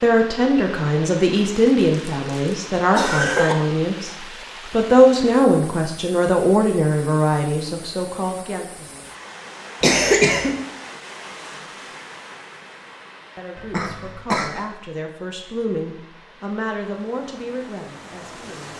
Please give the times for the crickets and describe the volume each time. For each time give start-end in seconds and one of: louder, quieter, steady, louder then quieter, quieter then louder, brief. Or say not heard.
not heard.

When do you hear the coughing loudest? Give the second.
10 s.